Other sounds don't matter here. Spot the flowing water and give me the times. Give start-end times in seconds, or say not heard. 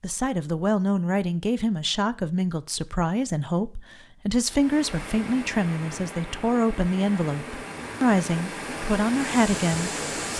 4.5-10.3.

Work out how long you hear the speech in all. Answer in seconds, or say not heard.
10 s.